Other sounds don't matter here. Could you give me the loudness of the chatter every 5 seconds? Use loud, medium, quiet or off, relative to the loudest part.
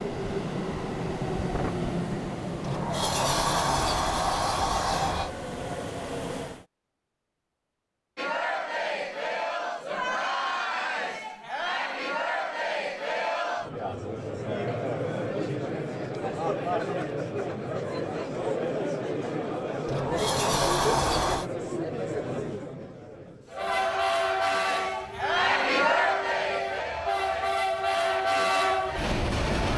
off, loud, loud, loud, loud, loud.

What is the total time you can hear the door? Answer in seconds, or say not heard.
4 s.